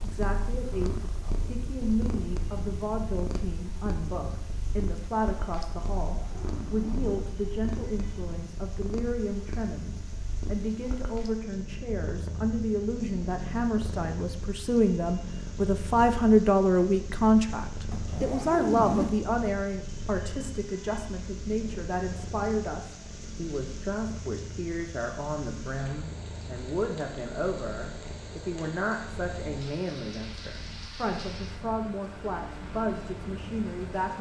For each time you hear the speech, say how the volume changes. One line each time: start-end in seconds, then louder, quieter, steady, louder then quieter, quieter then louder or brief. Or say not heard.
0.0-34.1 louder then quieter.